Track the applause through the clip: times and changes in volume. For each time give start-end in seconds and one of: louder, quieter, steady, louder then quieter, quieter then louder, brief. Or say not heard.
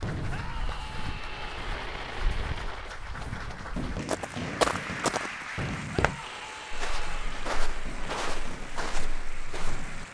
0.0-10.0 louder then quieter.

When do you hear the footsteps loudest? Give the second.
5 s.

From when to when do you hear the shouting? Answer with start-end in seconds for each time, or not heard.
0.2-1.7, 6.0-7.4.